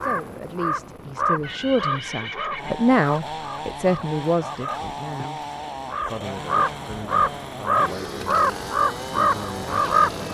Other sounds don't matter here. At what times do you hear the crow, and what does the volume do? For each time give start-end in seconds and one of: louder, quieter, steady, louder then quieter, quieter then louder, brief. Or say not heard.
0.0-10.2 quieter then louder.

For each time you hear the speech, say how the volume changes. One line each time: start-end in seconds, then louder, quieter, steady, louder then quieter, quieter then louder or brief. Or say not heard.
0.0-5.4 louder then quieter
6.0-10.2 steady.